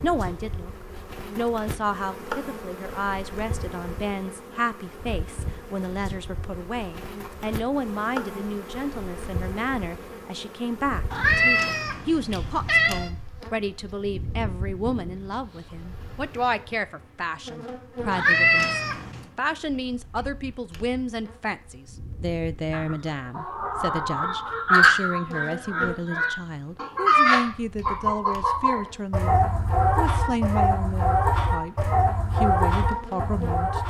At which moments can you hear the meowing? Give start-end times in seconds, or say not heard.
11.1-13.1, 18.1-19.2.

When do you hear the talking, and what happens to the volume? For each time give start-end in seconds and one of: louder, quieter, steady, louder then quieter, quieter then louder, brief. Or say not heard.
0.0-0.8 brief
1.4-33.8 steady.